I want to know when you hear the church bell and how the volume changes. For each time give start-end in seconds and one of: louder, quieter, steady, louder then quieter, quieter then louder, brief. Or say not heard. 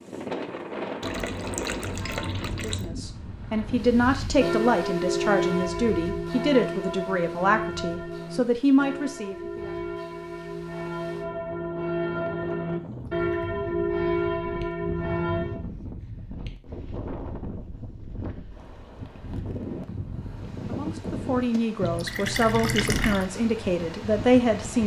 3.9-15.6 quieter then louder.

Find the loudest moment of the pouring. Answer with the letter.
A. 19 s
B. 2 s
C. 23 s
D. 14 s
C.